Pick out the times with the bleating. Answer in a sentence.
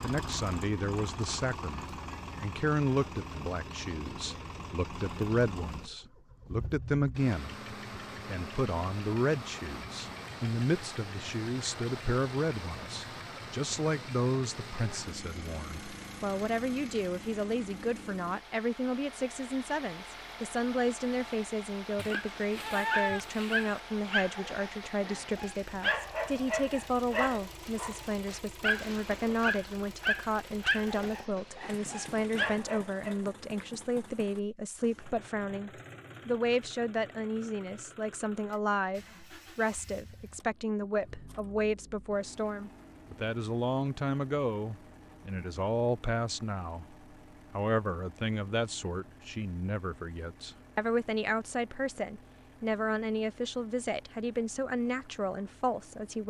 You can hear the bleating from 21.9 to 23.8 s.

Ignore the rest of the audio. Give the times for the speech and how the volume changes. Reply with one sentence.
You can hear the speech from 0.0 to 56.2 s, at a steady volume.